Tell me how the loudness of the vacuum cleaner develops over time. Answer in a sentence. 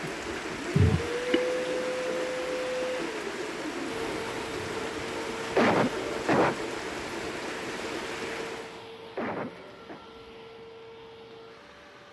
The volume of the vacuum cleaner goes down.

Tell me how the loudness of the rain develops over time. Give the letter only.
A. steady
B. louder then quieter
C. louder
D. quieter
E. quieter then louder
A.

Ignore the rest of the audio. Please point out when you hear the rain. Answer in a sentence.
The rain can be heard from 0.0 to 8.9 s.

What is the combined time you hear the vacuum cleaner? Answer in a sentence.
You can hear the vacuum cleaner for 12 seconds altogether.